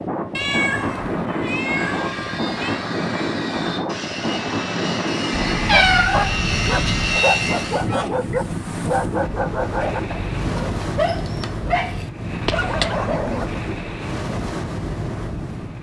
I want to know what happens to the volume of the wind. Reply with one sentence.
The loudness of the wind stays about the same.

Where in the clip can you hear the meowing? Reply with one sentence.
The meowing can be heard from 0.3 to 2.9 s, from 5.3 to 7.2 s and from 12.4 to 13.3 s.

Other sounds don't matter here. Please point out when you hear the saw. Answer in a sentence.
You can hear the saw from 1.6 to 7.8 s.